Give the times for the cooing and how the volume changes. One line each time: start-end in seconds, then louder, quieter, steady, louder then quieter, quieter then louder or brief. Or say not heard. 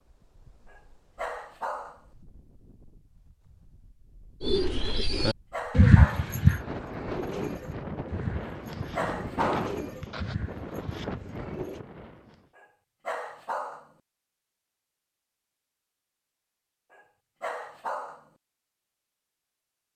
4.4-11.8 quieter.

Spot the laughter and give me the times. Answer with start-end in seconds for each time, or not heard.
not heard.